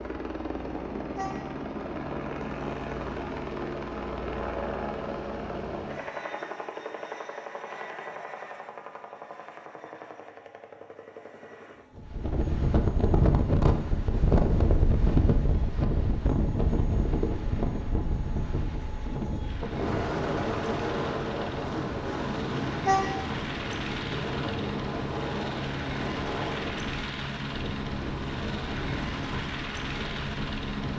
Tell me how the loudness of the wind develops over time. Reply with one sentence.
The volume of the wind goes down.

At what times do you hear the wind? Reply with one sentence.
The wind can be heard from 11.9 to 30.9 s.